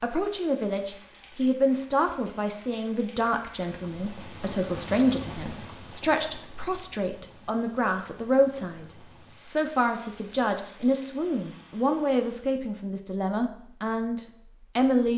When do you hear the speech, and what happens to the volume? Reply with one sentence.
You can hear the speech from 0.0 to 15.1 s, at a steady volume.